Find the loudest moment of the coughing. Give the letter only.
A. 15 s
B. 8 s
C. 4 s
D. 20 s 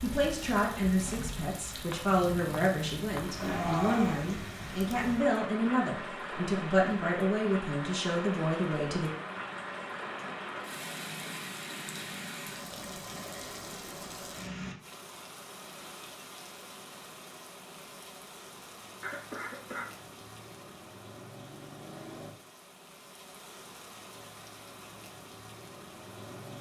C.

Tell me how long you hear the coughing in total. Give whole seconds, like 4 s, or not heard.
2 s.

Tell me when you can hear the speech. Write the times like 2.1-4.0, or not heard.
0.0-9.1.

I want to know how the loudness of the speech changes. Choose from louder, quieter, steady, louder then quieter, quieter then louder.
steady.